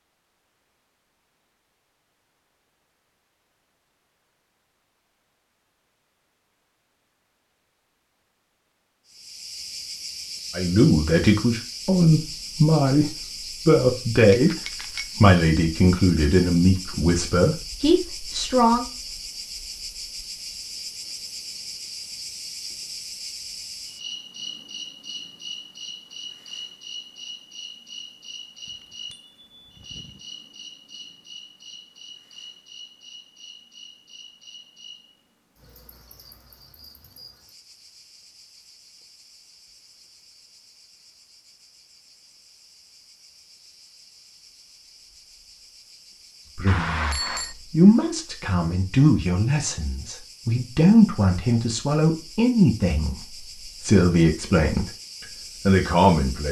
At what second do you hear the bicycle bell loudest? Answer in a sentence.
The volume of the bicycle bell peaks at 47 seconds.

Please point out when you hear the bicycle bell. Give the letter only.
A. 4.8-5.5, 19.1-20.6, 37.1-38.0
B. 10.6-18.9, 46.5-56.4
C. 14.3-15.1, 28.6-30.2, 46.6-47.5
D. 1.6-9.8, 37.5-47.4
C.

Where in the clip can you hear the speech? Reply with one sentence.
You can hear the speech from 10.6 to 18.9 s and from 46.5 to 56.4 s.